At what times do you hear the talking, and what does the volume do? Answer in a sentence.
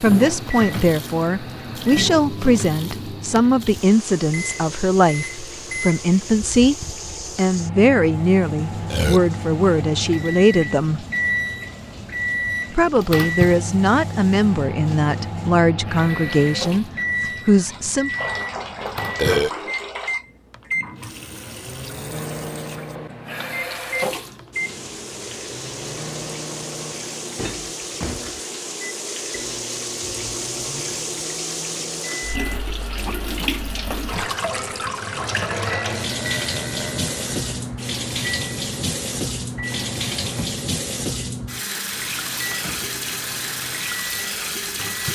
You can hear the talking from 0.0 to 11.1 s, at a steady volume; and from 12.8 to 18.1 s, at a steady volume.